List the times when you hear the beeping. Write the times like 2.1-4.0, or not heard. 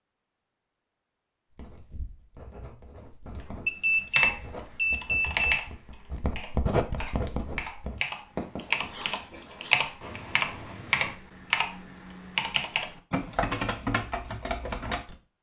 3.6-5.7.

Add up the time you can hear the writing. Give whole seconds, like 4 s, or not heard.
10 s.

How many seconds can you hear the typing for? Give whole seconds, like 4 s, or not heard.
11 s.